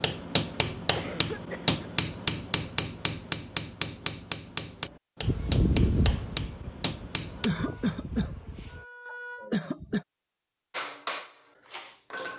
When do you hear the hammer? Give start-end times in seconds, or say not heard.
0.0-7.5, 10.7-12.3.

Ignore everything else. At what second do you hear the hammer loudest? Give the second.
2 s.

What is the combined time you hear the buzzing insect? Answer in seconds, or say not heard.
4 s.